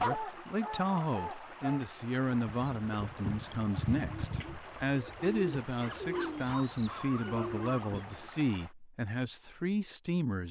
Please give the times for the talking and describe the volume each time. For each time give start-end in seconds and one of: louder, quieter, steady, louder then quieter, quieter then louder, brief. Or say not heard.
0.0-10.4 steady.